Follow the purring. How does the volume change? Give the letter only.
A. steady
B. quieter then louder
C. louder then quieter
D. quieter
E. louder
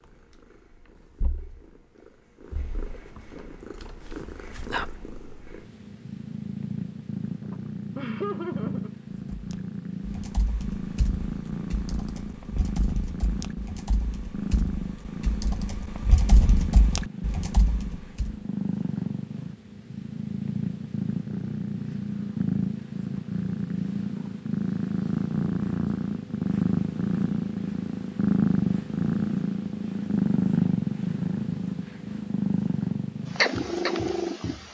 E.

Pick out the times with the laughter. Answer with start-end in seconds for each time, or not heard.
7.5-8.9.